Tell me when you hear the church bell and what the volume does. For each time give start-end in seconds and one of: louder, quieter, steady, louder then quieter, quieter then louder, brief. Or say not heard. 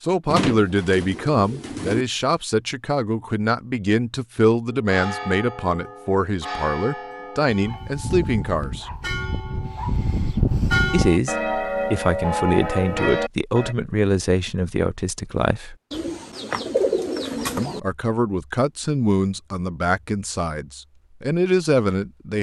4.7-13.8 louder.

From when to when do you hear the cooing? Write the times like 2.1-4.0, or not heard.
0.3-2.0, 15.9-17.8.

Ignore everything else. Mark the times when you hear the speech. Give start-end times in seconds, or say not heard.
0.0-8.9, 10.9-15.8, 17.6-22.3.